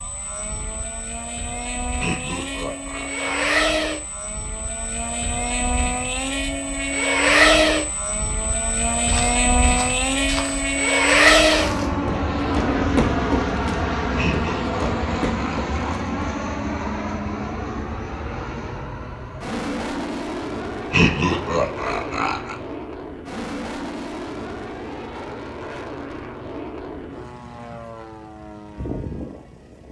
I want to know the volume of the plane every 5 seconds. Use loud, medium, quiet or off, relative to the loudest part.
medium, loud, loud, medium, medium, quiet.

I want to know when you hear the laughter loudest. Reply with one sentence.
The volume of the laughter peaks at 21 seconds.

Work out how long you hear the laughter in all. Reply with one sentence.
The laughter can be heard for 5 seconds in total.